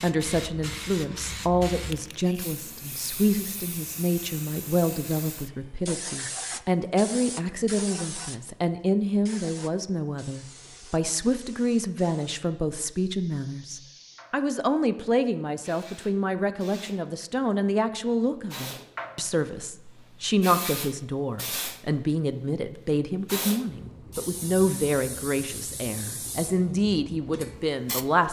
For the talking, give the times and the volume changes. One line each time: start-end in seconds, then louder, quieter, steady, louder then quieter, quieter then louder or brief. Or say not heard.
0.0-28.2 steady.